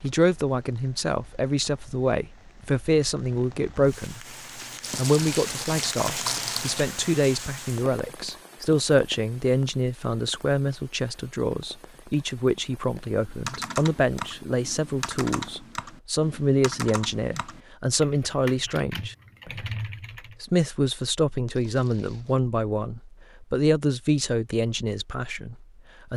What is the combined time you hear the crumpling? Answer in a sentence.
The crumpling can be heard for 3 seconds in total.